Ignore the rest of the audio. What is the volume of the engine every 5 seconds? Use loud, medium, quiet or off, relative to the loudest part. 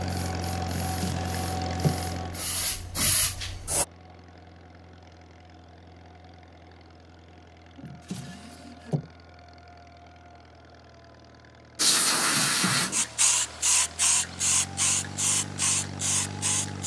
loud, quiet, medium, loud.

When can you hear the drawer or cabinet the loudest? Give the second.
2 s.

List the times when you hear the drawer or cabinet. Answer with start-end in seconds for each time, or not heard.
0.7-2.0, 7.8-9.1, 12.3-13.1.